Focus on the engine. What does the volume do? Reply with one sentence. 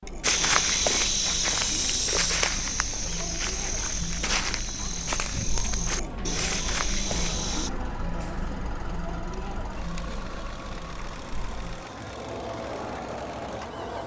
The volume of the engine stays about the same.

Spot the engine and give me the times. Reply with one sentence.
You can hear the engine from 7.0 to 14.0 s.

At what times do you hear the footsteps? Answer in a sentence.
You can hear the footsteps from 0.2 to 7.7 s.